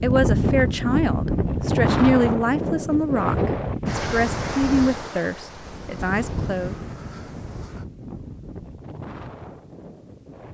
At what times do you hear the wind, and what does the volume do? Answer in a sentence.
You can hear the wind from 0.0 to 10.5 s, getting quieter.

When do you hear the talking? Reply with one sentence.
The talking can be heard from 0.0 to 6.8 s.